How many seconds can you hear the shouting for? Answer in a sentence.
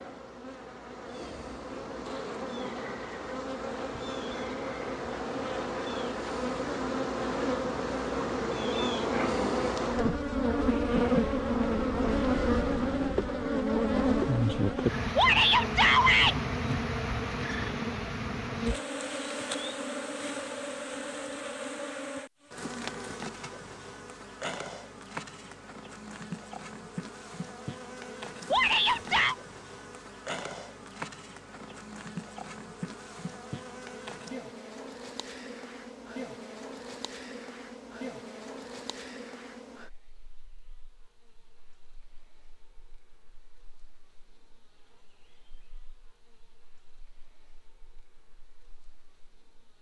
You can hear the shouting for 2 seconds altogether.